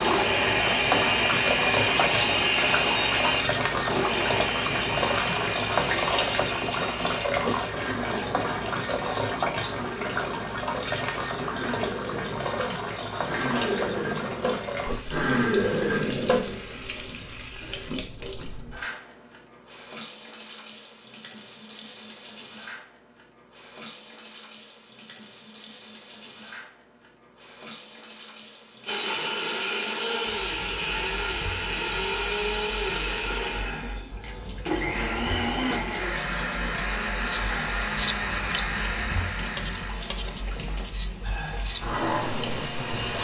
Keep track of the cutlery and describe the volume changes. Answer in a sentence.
The loudness of the cutlery goes up, then down.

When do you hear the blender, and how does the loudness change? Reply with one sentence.
You can hear the blender from 0.0 to 16.8 s, getting quieter then louder; and from 28.9 to 43.2 s, getting quieter.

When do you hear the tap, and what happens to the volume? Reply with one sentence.
The tap can be heard from 0.0 to 43.2 s, getting quieter then louder.